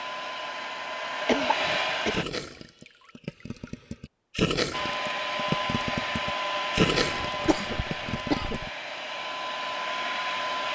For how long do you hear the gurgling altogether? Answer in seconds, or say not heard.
7 s.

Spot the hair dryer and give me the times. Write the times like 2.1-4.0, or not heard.
0.0-2.2, 4.7-10.6.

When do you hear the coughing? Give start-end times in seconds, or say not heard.
1.2-2.1, 7.0-8.7.